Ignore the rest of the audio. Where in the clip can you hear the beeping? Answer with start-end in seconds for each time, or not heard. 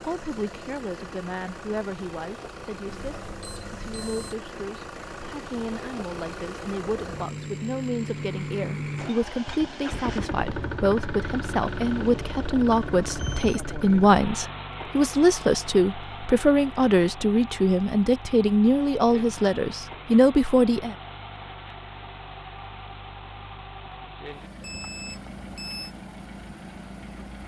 2.9-4.3, 12.9-13.6, 24.6-25.9.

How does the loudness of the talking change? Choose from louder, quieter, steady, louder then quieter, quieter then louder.
louder.